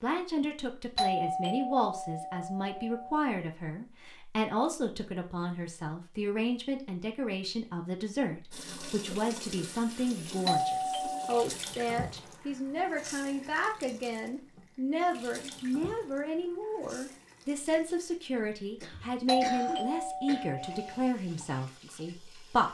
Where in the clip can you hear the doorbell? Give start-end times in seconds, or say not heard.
0.9-3.2, 10.4-11.2, 19.2-21.0.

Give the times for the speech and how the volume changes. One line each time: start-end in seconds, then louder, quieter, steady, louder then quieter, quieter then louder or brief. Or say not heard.
0.0-22.6 steady.